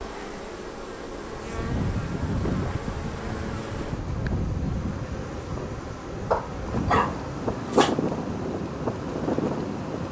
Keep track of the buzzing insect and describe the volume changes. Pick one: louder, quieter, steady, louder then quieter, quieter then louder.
steady.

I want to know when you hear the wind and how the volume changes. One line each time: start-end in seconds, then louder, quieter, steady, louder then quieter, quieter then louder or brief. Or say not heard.
1.4-10.0 quieter then louder.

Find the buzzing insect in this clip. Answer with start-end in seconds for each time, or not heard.
0.0-10.0.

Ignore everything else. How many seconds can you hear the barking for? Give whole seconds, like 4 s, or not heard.
2 s.